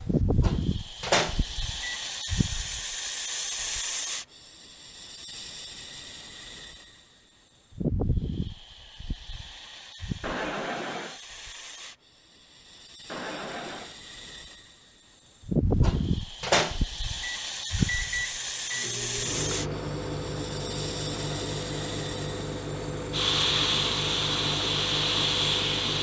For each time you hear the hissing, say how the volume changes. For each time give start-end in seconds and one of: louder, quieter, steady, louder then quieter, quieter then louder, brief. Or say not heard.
0.0-25.9 quieter then louder.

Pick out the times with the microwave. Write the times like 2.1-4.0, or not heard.
0.4-2.0, 15.8-25.9.